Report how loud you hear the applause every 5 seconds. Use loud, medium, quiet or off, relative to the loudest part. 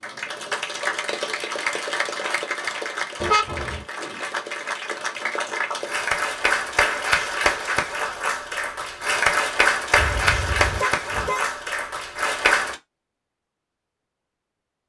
medium, loud, loud.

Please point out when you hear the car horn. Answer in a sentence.
You can hear the car horn from 3.2 to 3.9 s and from 9.9 to 11.5 s.